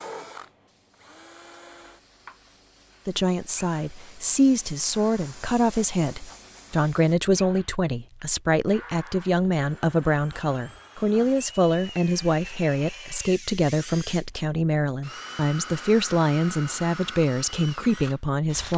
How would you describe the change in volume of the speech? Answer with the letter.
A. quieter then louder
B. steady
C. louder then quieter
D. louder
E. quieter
B.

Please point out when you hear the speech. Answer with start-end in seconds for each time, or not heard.
3.0-18.7.